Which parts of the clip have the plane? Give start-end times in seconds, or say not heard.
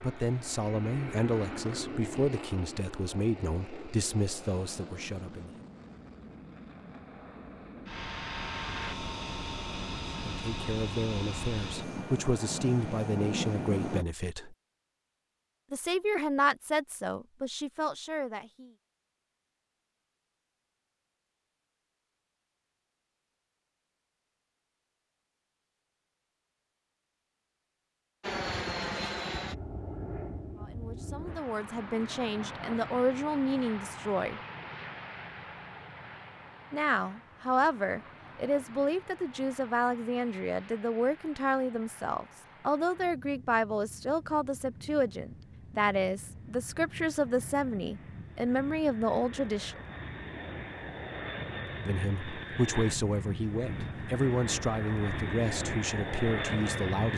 0.0-14.1, 28.2-57.1.